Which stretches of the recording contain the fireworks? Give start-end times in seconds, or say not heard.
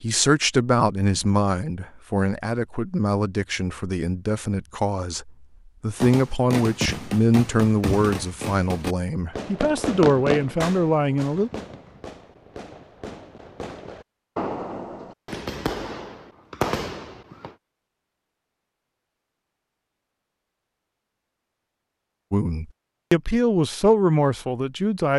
6.0-17.6.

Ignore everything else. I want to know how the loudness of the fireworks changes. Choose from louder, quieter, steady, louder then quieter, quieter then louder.
quieter then louder.